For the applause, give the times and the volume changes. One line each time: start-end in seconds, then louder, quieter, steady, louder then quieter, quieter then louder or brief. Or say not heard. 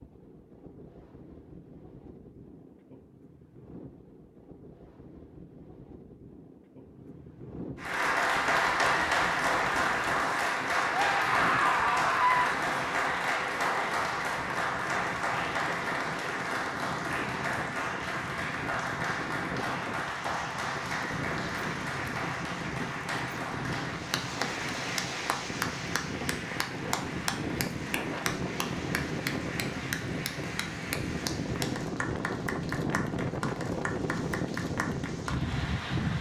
7.8-36.1 quieter.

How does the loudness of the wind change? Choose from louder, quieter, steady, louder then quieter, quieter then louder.
louder.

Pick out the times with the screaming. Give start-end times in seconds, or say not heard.
10.9-12.6.